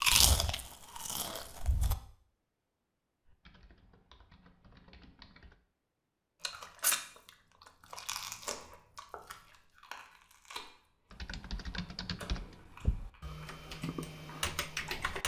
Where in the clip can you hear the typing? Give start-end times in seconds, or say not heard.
3.2-5.6, 11.1-15.2.